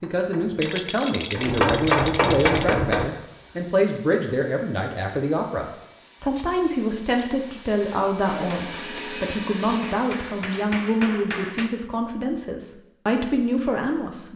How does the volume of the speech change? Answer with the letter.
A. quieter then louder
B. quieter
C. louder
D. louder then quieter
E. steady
E.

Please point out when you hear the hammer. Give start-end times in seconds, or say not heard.
0.0-3.1, 8.2-11.7.